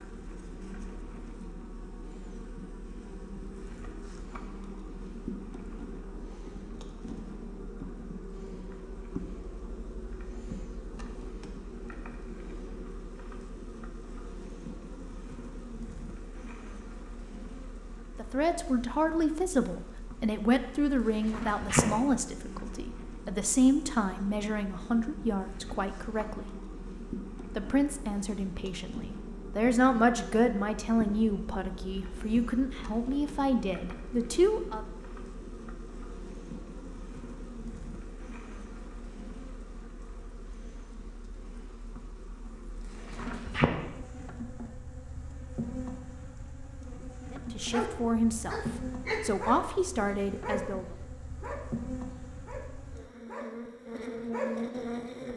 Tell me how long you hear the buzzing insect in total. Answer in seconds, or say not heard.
55 s.